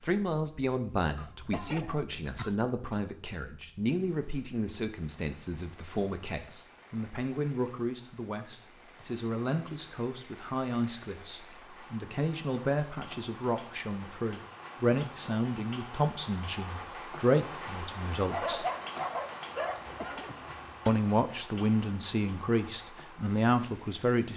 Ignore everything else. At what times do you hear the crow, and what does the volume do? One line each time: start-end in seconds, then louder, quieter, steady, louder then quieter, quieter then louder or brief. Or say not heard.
not heard.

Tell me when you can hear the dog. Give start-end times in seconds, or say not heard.
18.3-20.2.